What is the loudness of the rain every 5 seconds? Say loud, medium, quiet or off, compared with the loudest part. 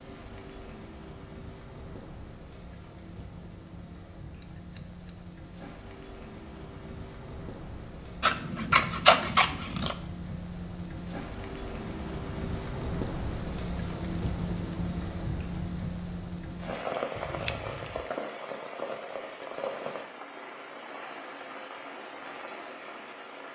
medium, medium, loud, loud, medium.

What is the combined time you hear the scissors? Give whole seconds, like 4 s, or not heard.
3 s.